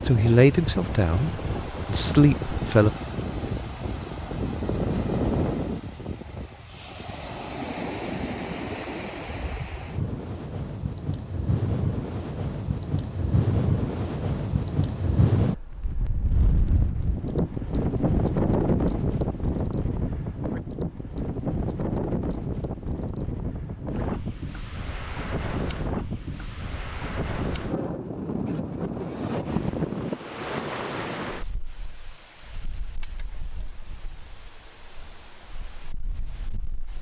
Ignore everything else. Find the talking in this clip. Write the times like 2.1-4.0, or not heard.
0.1-2.9.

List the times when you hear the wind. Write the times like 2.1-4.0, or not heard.
0.0-36.9.